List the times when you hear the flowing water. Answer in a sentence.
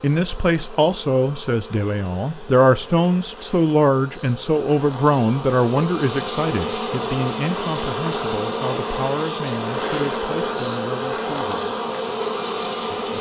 You can't hear the flowing water here.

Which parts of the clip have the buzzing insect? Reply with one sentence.
You can hear the buzzing insect from 0.0 to 13.1 s.